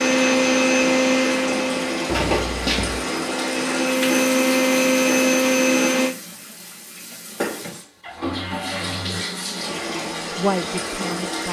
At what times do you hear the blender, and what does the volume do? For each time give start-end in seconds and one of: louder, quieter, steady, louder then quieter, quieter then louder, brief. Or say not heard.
0.0-6.2 quieter then louder.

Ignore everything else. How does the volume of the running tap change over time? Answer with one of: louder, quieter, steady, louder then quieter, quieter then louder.
quieter then louder.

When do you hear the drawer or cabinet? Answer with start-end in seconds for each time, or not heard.
2.0-3.0, 8.0-9.2.